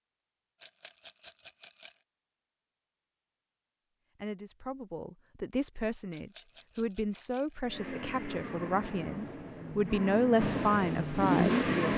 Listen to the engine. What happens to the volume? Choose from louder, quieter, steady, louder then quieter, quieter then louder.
louder.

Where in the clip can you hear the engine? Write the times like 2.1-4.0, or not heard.
7.6-11.9.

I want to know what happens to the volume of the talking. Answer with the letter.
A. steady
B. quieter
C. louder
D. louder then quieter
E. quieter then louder
C.